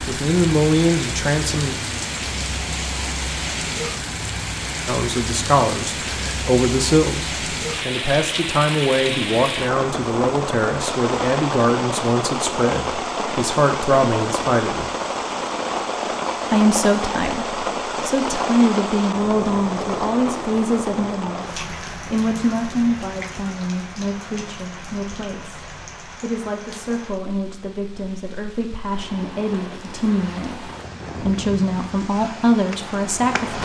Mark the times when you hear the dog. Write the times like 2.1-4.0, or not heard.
not heard.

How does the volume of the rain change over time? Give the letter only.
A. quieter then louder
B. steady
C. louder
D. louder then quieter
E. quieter
E.